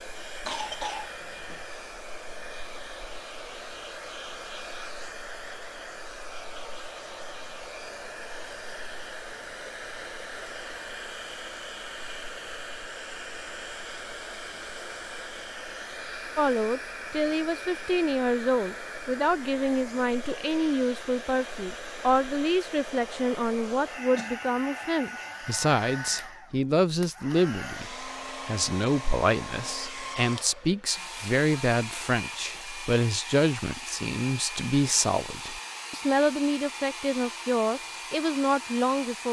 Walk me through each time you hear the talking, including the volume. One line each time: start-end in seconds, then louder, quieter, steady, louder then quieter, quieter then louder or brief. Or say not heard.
16.4-39.2 steady.